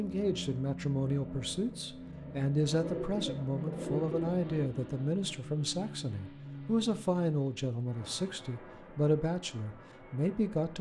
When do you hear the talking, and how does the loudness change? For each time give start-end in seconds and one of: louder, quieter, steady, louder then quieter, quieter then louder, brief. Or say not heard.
0.0-10.7 steady.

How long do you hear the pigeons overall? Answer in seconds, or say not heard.
2 s.